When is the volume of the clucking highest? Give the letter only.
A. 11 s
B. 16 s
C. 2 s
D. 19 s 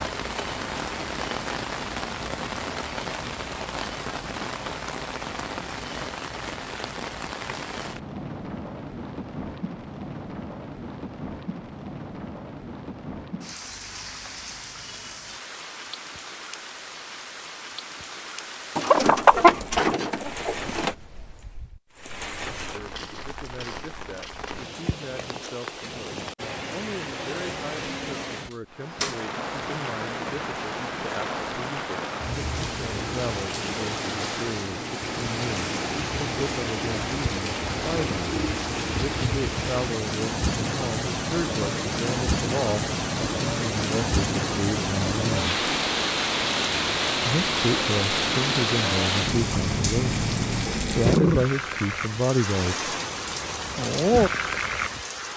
D.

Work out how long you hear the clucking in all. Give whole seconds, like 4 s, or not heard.
2 s.